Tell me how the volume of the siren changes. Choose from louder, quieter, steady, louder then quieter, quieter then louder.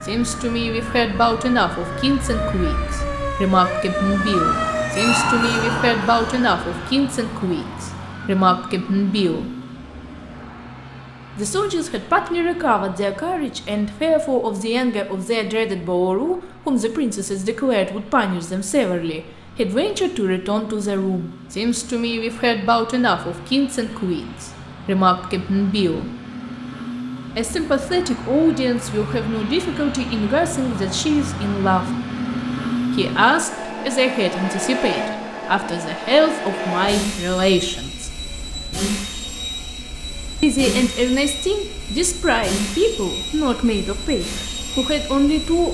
louder then quieter.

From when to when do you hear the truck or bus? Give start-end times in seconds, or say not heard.
0.0-45.6.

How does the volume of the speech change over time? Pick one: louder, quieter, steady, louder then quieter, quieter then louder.
steady.